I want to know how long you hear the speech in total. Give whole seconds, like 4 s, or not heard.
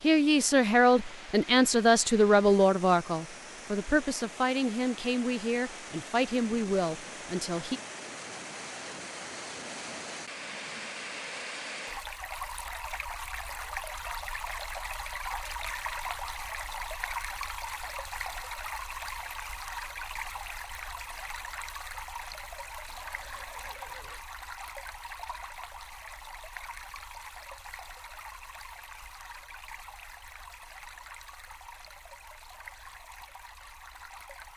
8 s.